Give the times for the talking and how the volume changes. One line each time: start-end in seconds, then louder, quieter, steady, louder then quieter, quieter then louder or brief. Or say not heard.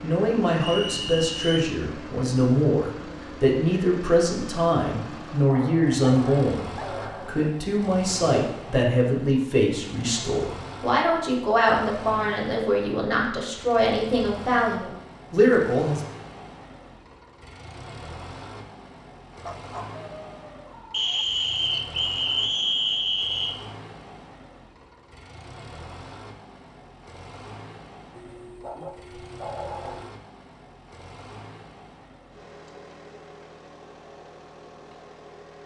0.0-16.0 steady.